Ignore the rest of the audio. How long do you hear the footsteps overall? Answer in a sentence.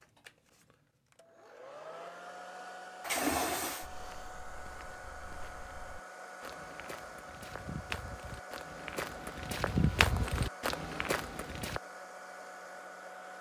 The footsteps can be heard for 8 seconds in total.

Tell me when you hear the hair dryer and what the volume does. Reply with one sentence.
You can hear the hair dryer from 0.0 to 13.3 s, at a steady volume.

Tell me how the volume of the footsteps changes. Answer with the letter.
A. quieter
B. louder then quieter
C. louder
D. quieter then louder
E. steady
C.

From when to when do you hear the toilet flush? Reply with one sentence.
You can hear the toilet flush from 3.0 to 3.9 s.